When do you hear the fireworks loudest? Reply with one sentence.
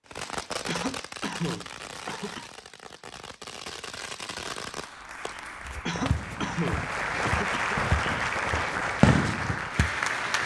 The volume of the fireworks peaks at 9 seconds.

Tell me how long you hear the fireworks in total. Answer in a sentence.
The fireworks can be heard for 10 seconds in total.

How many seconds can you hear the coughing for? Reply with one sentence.
The coughing can be heard for 4 seconds in total.